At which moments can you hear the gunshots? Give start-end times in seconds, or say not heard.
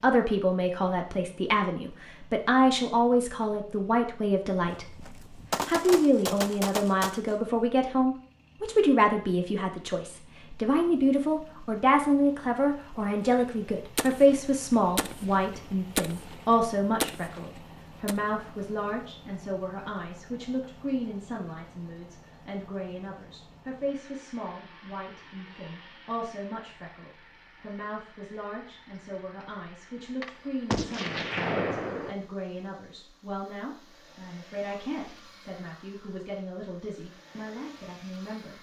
4.7-7.3, 13.2-17.4, 30.2-32.1.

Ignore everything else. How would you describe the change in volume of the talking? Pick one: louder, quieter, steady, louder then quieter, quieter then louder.
quieter.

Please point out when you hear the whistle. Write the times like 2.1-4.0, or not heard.
not heard.